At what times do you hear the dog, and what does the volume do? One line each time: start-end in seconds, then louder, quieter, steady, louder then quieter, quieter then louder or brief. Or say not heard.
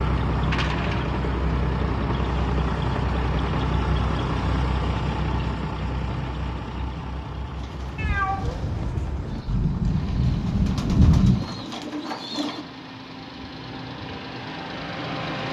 not heard.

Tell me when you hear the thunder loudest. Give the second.
11 s.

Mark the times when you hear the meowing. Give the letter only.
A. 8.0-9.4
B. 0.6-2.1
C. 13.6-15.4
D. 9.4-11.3
A.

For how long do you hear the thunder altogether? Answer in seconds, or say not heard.
2 s.